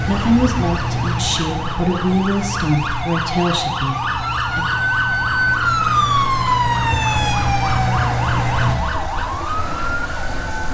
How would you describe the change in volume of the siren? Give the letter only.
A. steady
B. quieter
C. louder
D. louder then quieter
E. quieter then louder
D.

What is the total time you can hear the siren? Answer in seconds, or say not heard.
11 s.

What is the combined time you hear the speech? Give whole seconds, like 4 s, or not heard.
5 s.